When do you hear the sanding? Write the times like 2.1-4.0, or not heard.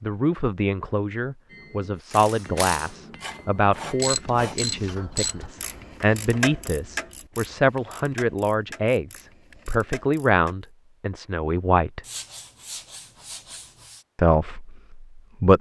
3.2-4.6, 12.0-14.1.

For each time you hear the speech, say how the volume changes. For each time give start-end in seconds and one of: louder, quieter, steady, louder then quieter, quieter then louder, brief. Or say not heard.
0.0-12.0 steady
14.2-15.5 brief.